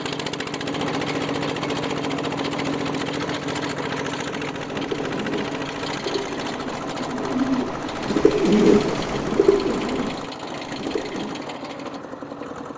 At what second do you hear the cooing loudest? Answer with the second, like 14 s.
9 s.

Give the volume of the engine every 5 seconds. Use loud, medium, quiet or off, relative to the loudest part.
loud, loud, medium.